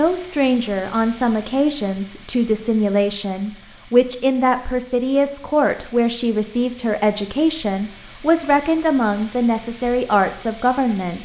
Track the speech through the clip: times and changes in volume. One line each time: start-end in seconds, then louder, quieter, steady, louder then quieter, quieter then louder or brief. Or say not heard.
0.0-11.2 steady.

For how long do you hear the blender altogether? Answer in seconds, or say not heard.
not heard.